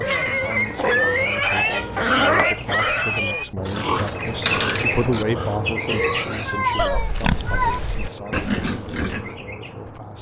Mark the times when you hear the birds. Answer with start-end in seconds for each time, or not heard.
0.0-10.1.